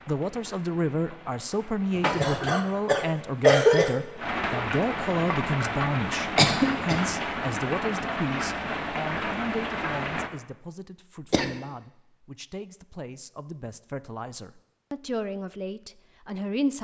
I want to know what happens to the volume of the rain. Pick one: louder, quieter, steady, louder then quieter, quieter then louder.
louder.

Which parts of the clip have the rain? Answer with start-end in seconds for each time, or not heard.
0.0-10.3.